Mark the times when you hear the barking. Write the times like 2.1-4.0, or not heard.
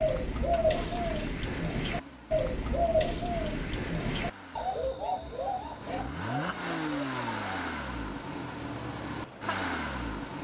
not heard.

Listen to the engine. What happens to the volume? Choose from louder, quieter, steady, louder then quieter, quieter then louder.
louder.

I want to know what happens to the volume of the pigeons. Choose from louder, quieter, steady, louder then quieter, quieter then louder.
quieter.